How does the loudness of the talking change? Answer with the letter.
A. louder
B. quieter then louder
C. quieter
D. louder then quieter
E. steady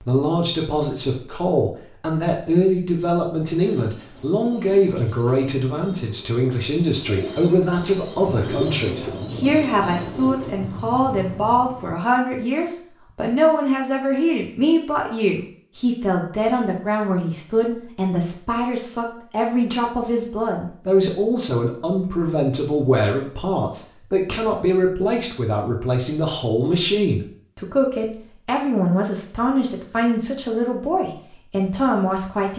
E.